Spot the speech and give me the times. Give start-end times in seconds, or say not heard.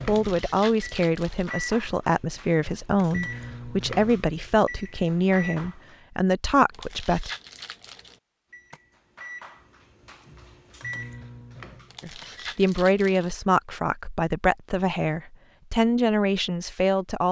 0.1-7.3, 12.0-17.2.